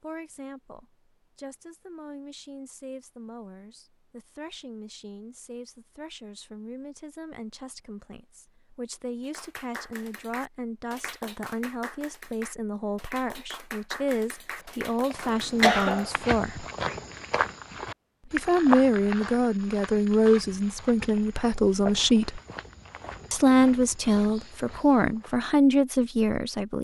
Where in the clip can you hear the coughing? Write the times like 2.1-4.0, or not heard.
15.2-16.1.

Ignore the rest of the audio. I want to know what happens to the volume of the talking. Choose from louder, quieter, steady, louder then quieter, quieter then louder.
louder.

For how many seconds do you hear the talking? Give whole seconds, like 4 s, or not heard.
24 s.